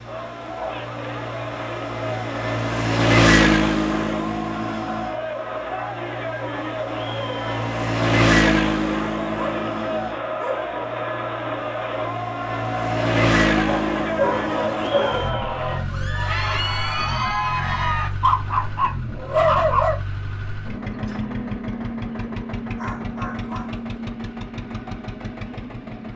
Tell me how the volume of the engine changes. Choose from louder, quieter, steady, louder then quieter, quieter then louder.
quieter.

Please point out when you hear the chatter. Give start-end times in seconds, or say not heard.
0.0-18.1.